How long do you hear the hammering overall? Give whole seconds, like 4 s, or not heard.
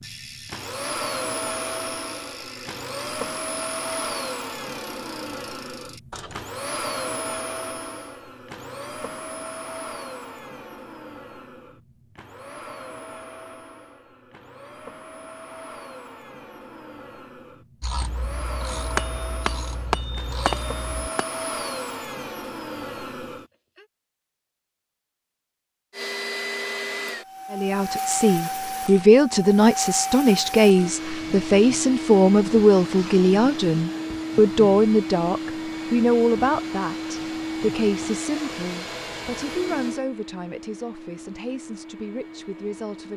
2 s.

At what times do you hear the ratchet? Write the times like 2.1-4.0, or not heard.
0.0-6.5, 17.8-21.1.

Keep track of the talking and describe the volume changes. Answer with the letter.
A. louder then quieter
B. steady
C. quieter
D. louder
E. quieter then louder
C.